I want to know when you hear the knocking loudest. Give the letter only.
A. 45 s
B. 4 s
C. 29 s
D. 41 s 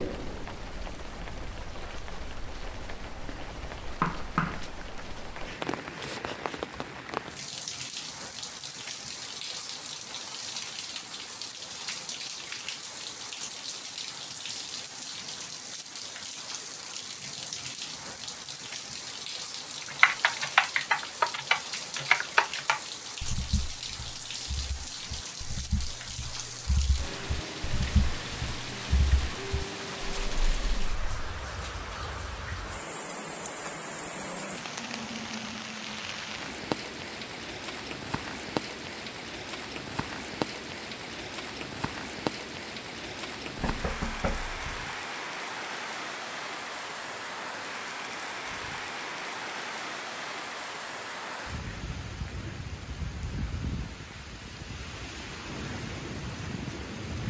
B.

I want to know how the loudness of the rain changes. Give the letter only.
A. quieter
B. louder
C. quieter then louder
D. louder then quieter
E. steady
E.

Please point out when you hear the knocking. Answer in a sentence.
You can hear the knocking from 3.9 to 4.7 s and from 43.5 to 44.9 s.